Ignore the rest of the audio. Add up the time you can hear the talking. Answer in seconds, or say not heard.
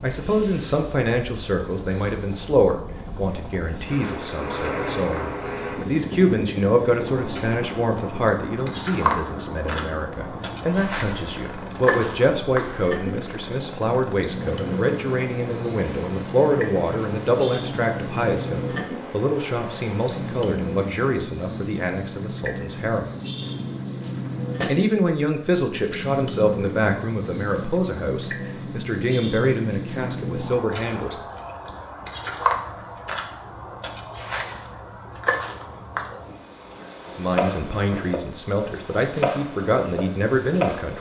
33 s.